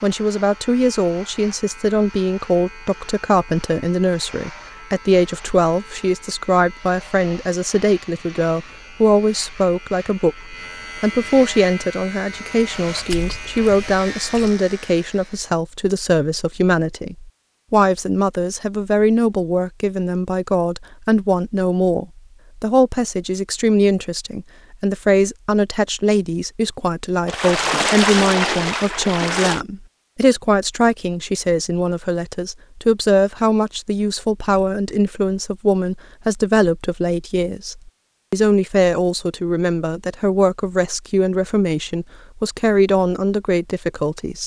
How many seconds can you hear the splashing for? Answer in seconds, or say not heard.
4 s.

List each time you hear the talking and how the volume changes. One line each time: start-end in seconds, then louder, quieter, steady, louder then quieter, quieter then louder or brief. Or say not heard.
0.0-44.4 steady.